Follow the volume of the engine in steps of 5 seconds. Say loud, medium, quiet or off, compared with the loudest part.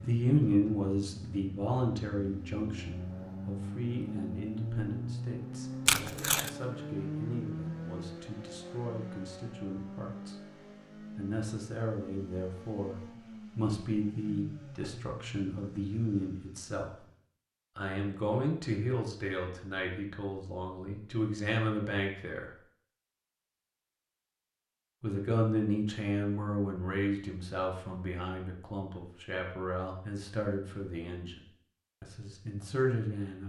loud, loud, medium, medium, off, off, off.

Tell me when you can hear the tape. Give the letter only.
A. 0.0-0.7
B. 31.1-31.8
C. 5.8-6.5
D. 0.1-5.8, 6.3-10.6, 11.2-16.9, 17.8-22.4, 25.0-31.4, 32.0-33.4
C.